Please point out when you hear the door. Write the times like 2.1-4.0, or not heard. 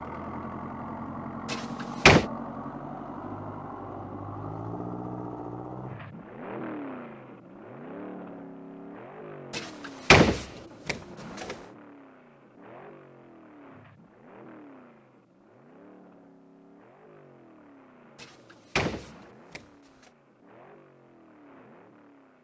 1.5-2.2, 9.5-11.6, 18.2-19.6.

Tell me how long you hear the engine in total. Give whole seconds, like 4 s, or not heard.
22 s.